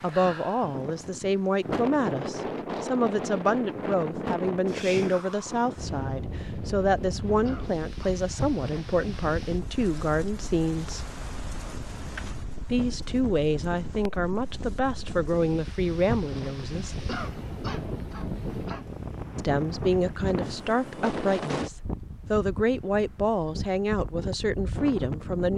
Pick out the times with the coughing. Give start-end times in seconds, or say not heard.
7.5-8.2, 17.1-18.9.